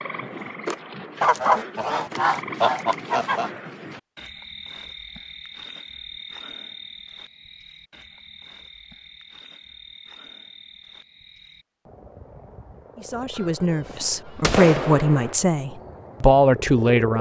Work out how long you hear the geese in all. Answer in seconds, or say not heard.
4 s.